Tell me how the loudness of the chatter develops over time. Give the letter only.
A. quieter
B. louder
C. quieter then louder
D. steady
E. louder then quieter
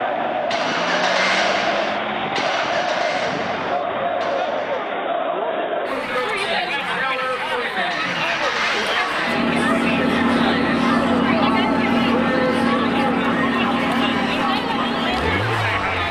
D.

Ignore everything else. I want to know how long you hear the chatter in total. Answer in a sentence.
You can hear the chatter for 16 seconds altogether.